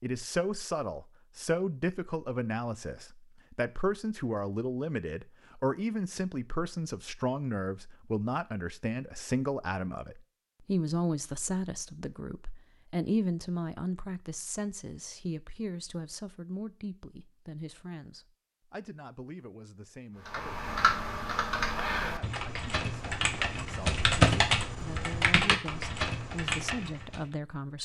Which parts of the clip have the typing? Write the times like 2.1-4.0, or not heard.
20.2-27.2.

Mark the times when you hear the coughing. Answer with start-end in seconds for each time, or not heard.
not heard.